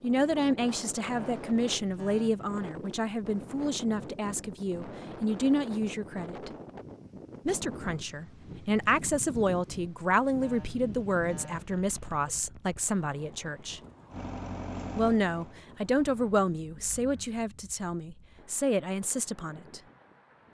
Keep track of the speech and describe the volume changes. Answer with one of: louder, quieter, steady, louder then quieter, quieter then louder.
steady.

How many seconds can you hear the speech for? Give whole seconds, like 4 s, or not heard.
18 s.